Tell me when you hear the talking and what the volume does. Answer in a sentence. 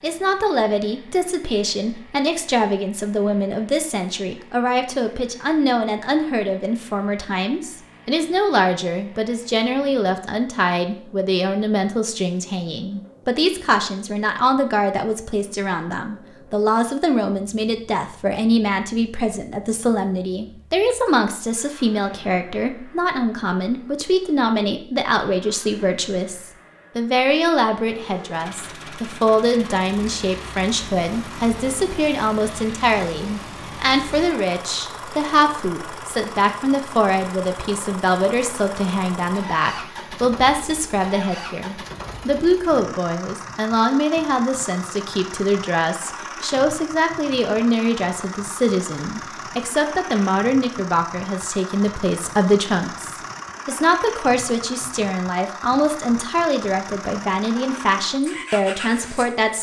You can hear the talking from 0.0 to 59.5 s, at a steady volume.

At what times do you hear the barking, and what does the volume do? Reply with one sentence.
You can't hear the barking here.